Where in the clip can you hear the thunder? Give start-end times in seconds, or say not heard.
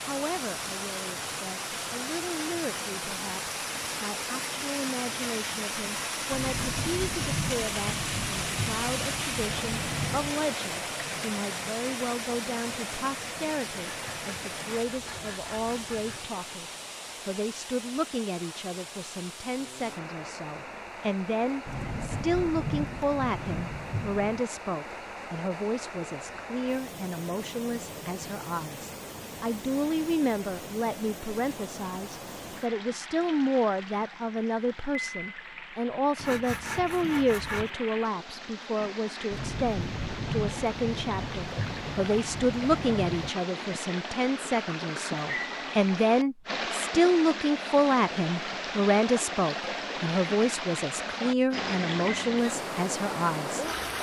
6.3-10.3, 21.6-24.4, 39.3-43.3.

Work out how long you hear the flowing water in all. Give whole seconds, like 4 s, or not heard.
54 s.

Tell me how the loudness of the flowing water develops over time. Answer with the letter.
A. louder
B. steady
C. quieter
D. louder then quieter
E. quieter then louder
E.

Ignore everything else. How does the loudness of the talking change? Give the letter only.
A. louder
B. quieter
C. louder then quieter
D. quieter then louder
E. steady
A.